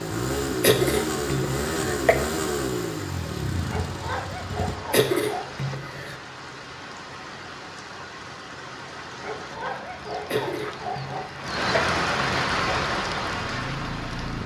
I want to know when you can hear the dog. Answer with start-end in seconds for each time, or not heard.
3.7-5.5, 9.2-11.2.